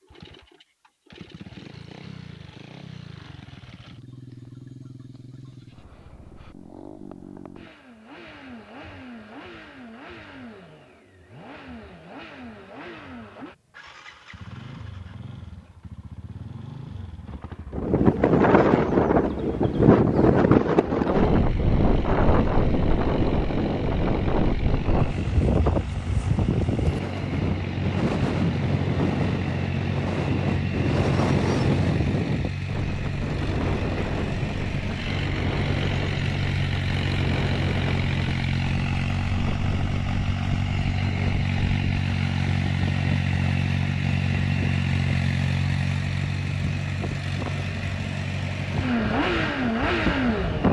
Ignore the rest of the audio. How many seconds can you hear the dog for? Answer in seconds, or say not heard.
not heard.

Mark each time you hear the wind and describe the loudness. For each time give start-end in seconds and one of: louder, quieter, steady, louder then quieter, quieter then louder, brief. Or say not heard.
17.7-50.6 quieter.